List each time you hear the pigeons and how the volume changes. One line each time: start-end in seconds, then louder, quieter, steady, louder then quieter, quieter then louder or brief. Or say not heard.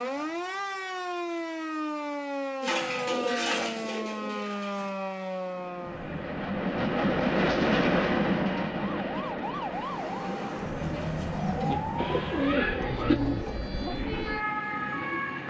2.6-5.0 brief
10.7-15.2 louder then quieter.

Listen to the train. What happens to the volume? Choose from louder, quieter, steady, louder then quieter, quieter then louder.
quieter.